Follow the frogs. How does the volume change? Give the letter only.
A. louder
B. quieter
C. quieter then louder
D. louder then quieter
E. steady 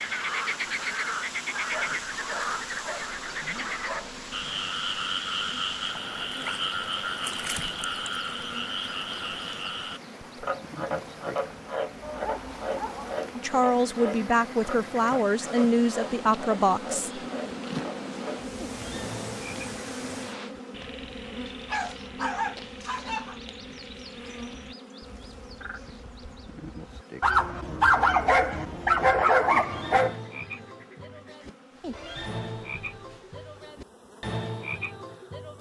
C.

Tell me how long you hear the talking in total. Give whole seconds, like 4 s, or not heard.
4 s.